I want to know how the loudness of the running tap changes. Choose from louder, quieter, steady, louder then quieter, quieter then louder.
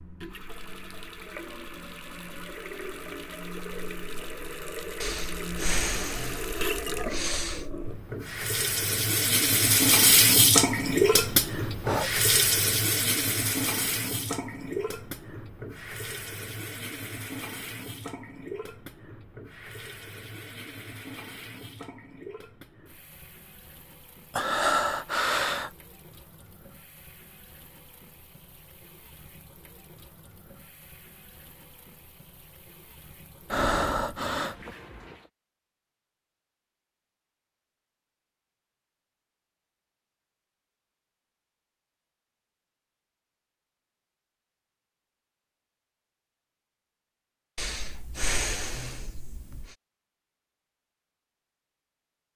louder then quieter.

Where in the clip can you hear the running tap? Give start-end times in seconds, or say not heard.
0.0-35.3.